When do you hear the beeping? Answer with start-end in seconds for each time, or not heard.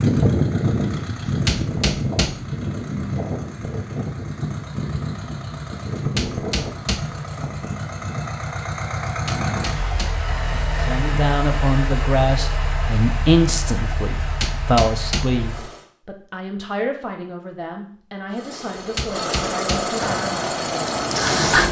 not heard.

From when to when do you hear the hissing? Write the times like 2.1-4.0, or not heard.
20.0-21.6.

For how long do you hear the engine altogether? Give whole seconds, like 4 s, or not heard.
19 s.